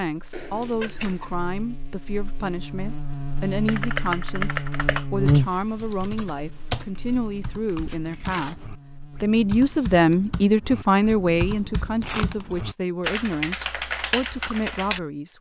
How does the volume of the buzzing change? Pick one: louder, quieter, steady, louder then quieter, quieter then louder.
louder then quieter.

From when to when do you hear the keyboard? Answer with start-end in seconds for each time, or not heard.
3.6-15.0.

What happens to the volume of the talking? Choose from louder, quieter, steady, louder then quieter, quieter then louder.
louder then quieter.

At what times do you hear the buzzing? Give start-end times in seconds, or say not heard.
0.1-9.6.